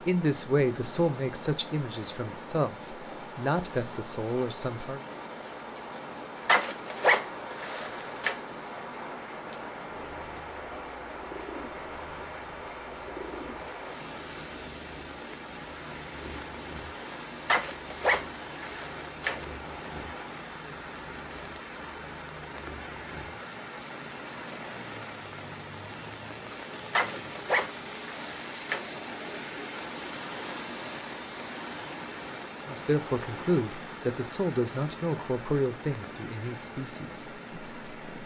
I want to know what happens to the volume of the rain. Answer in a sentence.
The loudness of the rain stays about the same.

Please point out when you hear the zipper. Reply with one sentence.
You can hear the zipper from 6.5 to 8.3 s, from 17.4 to 19.4 s and from 26.9 to 28.8 s.